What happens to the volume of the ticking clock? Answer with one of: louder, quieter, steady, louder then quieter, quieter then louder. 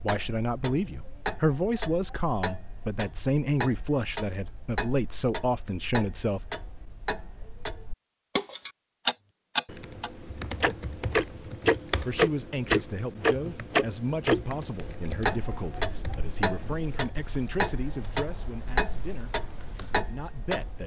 louder then quieter.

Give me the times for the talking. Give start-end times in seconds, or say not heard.
0.0-6.5, 11.8-20.8.